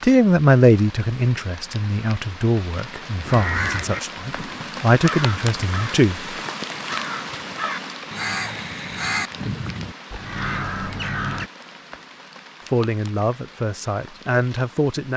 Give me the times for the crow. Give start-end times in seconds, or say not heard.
3.2-11.5.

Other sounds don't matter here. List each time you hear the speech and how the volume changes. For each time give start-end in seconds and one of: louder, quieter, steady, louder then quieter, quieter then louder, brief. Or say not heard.
0.0-6.2 quieter then louder
12.7-15.1 brief.